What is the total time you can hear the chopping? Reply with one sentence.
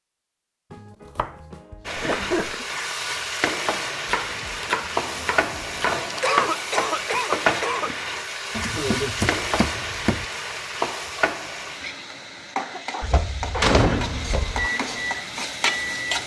You can hear the chopping for 7 seconds altogether.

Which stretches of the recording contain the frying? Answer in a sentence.
The frying can be heard from 1.9 to 16.2 s.